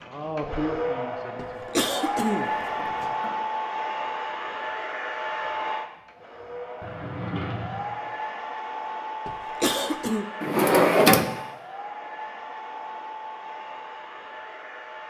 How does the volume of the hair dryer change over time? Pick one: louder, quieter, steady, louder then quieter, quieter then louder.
quieter.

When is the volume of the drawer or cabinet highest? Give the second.
11 s.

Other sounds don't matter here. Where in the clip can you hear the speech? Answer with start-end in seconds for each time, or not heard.
0.0-1.9.